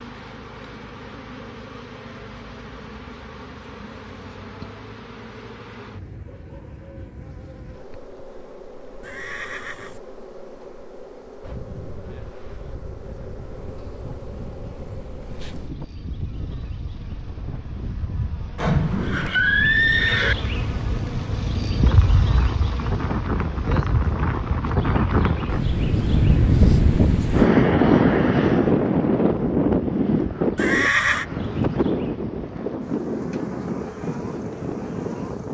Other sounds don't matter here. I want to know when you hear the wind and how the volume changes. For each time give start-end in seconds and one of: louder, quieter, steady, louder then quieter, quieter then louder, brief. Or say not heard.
11.4-35.4 louder then quieter.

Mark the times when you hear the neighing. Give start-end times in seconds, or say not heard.
9.0-10.0, 18.6-20.4, 30.6-31.2.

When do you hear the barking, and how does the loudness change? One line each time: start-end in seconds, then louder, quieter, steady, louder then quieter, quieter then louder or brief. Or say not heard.
not heard.